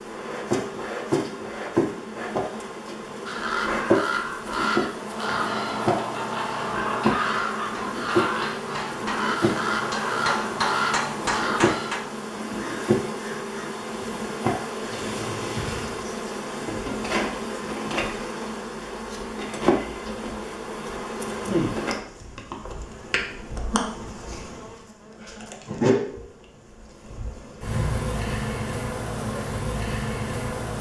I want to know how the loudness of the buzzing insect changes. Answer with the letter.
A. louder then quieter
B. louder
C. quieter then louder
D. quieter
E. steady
E.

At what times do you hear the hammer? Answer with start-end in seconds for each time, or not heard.
5.0-12.1.